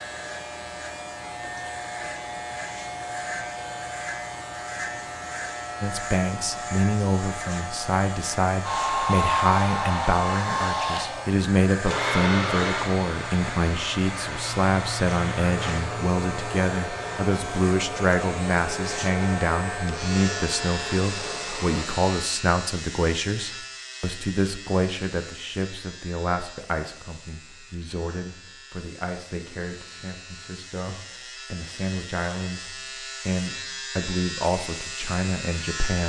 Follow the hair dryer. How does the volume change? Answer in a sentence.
The loudness of the hair dryer goes down.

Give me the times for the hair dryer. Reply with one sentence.
You can hear the hair dryer from 8.6 to 21.9 s.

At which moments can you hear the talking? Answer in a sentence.
The talking can be heard from 5.8 to 36.0 s.